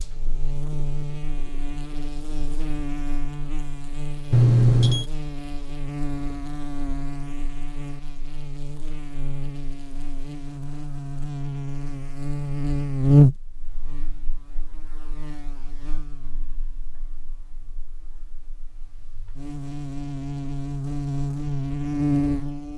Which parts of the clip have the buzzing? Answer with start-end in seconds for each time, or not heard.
0.0-22.7.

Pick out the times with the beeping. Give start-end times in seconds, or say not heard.
4.3-5.0.